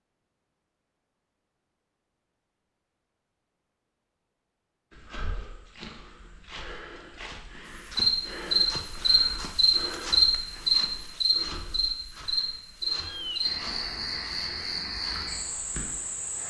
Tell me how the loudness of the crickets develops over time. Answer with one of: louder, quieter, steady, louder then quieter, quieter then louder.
quieter.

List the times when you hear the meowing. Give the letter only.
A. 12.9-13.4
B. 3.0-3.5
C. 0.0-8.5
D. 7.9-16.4
A.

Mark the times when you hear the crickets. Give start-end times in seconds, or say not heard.
7.9-16.4.